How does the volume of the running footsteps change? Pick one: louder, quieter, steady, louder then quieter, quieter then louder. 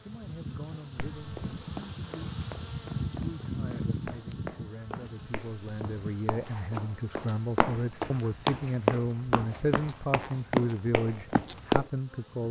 louder.